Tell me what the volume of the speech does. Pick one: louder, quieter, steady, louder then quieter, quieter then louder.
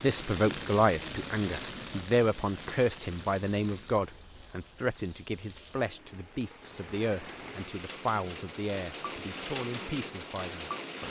quieter.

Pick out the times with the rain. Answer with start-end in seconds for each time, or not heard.
0.0-11.0.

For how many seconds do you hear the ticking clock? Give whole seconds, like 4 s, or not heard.
not heard.